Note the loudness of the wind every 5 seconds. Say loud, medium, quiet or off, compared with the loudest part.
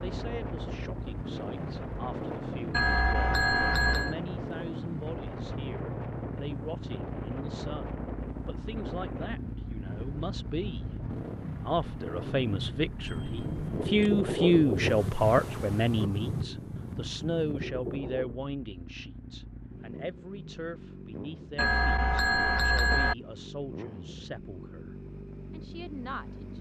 medium, medium, loud, loud, off, off.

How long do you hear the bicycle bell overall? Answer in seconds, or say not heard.
4 s.